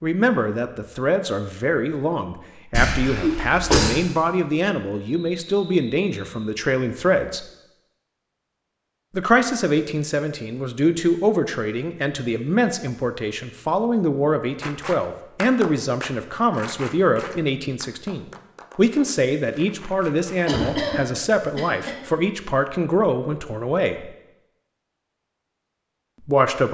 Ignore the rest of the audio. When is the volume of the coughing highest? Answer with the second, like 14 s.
4 s.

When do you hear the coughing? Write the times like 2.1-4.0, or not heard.
2.7-4.0, 20.4-22.0.